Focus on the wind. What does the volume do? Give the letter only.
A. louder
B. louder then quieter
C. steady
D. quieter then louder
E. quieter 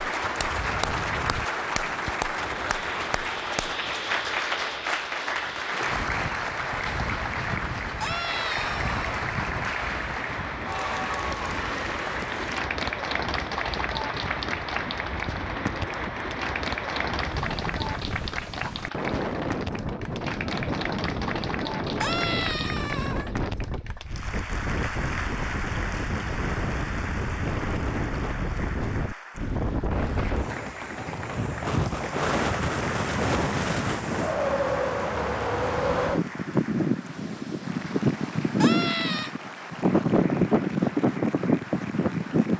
A.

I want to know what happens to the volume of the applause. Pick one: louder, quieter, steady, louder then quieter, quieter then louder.
quieter.